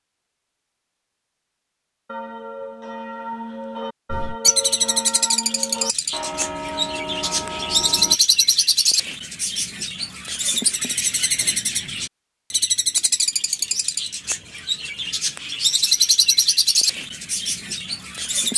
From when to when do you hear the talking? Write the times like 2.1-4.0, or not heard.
not heard.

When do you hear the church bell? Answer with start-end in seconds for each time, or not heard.
2.0-8.2.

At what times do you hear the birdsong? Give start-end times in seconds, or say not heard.
4.1-18.5.